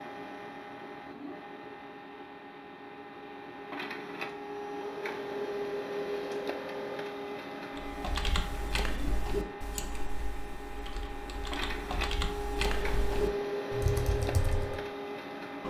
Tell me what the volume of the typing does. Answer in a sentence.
The loudness of the typing goes down, then up.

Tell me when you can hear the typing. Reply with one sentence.
The typing can be heard from 7.8 to 14.8 s.